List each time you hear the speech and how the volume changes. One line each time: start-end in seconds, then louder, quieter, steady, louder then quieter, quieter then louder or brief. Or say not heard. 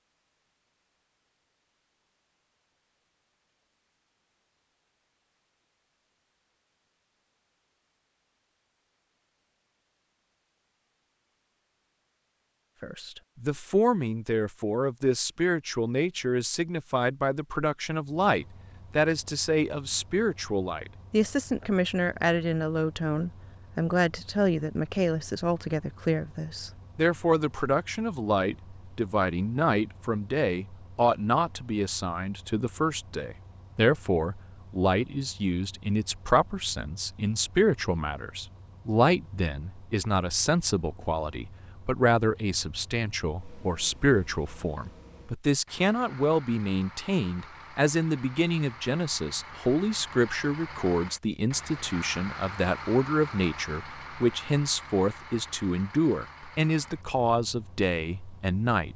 12.8-58.9 steady.